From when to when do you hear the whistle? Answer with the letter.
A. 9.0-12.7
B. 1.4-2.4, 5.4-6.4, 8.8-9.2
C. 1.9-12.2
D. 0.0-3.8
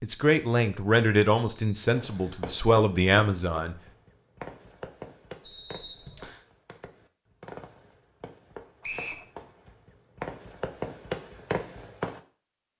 B.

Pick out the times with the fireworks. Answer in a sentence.
You can hear the fireworks from 1.9 to 12.2 s.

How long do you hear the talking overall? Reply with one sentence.
You can hear the talking for 4 seconds altogether.